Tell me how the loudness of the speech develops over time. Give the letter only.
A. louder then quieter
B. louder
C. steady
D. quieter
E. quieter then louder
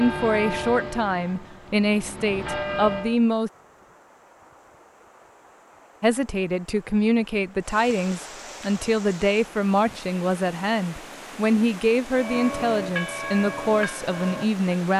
C.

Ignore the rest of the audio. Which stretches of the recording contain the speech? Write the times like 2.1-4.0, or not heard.
0.0-3.5, 6.0-14.9.